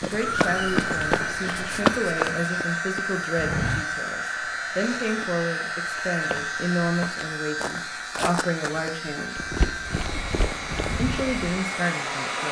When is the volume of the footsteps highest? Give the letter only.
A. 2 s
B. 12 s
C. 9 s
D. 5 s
A.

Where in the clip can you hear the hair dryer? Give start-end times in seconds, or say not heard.
0.1-12.4.